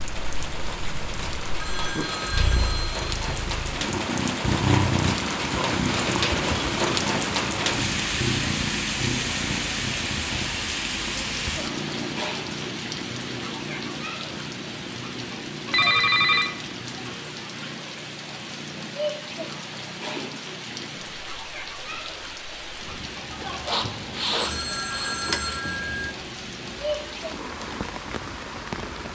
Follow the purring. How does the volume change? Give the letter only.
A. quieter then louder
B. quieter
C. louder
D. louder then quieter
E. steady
B.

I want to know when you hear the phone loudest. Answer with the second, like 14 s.
16 s.